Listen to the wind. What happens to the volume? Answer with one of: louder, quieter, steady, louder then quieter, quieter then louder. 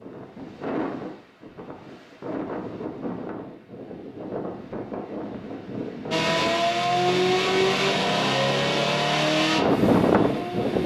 louder.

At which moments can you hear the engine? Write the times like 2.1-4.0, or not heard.
6.1-10.8.